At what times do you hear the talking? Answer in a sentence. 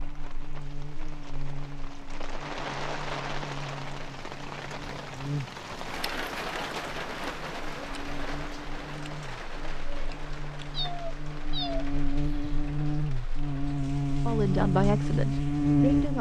The talking can be heard from 14.2 to 16.1 s.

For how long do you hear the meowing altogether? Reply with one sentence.
The meowing can be heard for 2 seconds in total.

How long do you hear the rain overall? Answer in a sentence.
You can hear the rain for 16 seconds altogether.